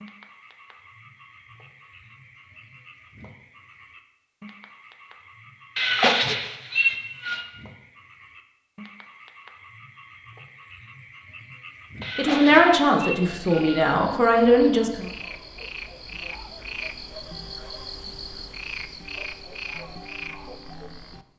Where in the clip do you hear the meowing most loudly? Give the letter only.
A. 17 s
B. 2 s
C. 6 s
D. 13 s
C.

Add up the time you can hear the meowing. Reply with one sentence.
You can hear the meowing for 4 seconds altogether.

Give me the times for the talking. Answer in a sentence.
You can hear the talking from 12.2 to 15.1 s.